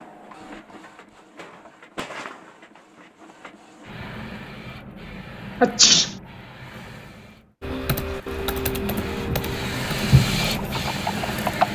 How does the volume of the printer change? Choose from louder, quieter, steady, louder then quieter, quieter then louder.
louder.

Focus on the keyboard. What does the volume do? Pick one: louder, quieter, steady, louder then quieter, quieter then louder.
quieter then louder.